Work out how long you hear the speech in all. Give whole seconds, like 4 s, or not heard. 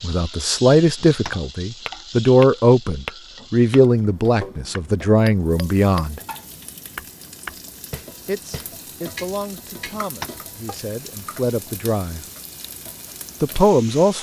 11 s.